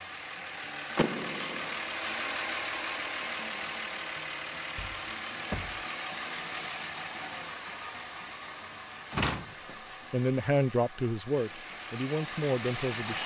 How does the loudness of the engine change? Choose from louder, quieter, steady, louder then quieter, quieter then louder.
quieter.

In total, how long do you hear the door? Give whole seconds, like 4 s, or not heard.
2 s.